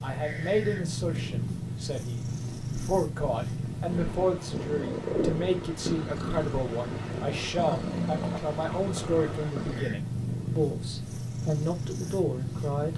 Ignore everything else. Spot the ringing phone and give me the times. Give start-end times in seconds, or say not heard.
not heard.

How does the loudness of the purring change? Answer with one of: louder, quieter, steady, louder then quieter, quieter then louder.
steady.